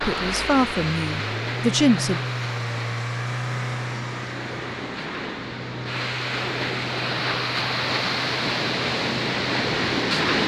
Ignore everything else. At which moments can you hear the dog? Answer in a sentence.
You can't hear the dog here.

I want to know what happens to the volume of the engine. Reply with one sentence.
The volume of the engine goes down.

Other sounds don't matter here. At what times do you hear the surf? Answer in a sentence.
The surf can be heard from 0.0 to 10.4 s.